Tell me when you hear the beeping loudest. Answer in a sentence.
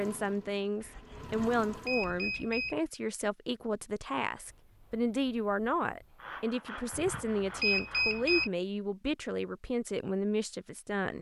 The loudest moment of the beeping is at 8 seconds.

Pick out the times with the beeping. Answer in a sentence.
The beeping can be heard from 1.1 to 2.8 s and from 6.9 to 8.5 s.